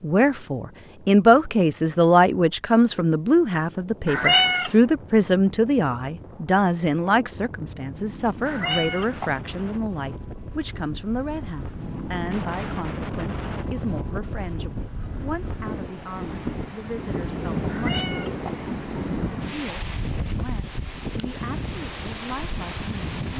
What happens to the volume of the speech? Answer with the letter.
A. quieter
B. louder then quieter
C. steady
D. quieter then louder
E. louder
A.